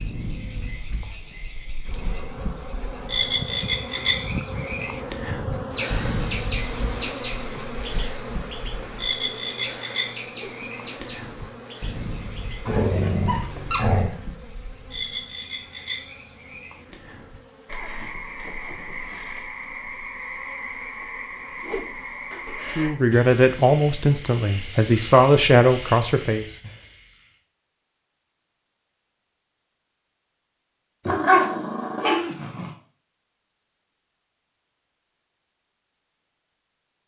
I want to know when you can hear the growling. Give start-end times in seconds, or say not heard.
12.7-14.2, 31.1-32.7.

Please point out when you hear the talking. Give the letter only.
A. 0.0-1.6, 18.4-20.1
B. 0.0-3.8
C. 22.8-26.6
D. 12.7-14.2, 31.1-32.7
C.